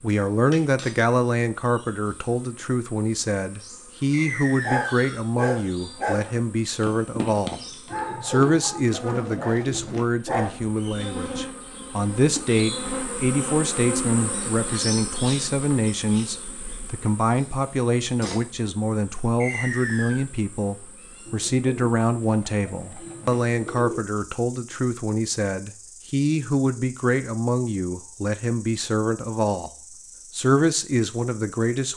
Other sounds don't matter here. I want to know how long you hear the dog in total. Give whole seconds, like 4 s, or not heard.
6 s.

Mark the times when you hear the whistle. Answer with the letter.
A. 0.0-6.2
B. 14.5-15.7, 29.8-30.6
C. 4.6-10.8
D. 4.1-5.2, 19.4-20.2
D.